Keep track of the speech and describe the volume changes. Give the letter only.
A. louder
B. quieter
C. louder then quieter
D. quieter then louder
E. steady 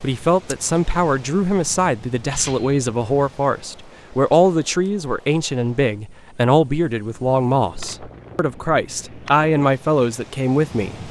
E.